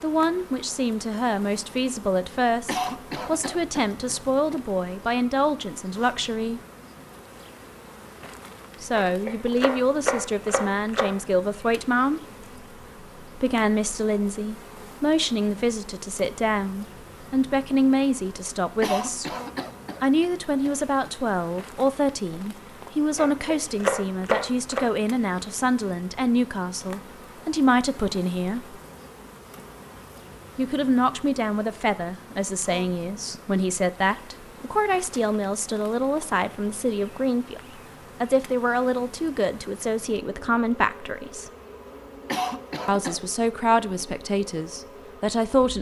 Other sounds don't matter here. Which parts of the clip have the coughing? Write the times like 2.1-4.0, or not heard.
2.6-4.7, 18.8-21.3, 42.2-43.2.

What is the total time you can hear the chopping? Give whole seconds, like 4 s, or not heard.
4 s.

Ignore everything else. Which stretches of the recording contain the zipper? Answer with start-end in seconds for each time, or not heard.
not heard.